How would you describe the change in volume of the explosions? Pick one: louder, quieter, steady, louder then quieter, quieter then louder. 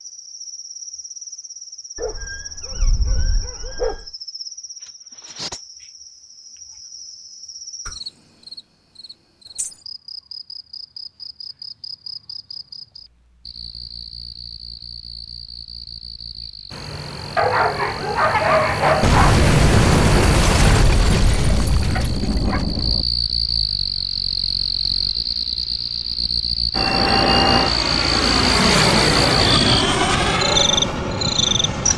quieter.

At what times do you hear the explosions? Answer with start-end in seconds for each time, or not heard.
19.0-23.1.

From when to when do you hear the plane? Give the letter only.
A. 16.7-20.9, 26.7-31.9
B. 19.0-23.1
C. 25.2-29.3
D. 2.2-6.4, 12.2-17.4
A.